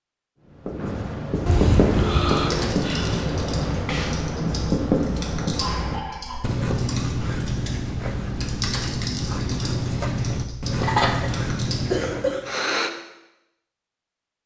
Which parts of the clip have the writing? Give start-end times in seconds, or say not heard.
0.5-12.4.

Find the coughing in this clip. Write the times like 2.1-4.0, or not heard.
1.4-2.8, 5.5-6.4, 10.8-12.4.